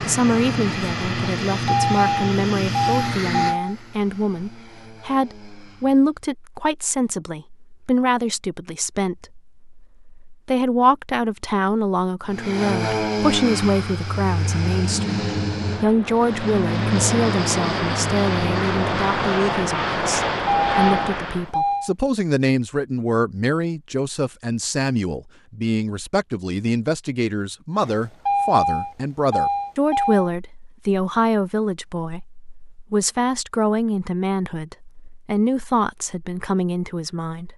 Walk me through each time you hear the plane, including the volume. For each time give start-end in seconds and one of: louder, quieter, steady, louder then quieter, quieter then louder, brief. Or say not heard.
0.0-6.2 quieter
12.2-21.5 steady.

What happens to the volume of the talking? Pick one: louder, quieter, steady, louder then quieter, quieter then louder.
steady.